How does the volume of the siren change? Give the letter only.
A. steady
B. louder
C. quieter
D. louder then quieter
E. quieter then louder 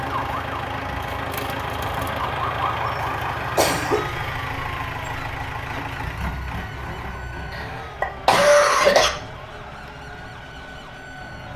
C.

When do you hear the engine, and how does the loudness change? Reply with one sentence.
You can hear the engine from 0.0 to 11.5 s, getting quieter.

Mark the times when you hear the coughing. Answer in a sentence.
You can hear the coughing from 3.4 to 4.2 s and from 7.5 to 9.1 s.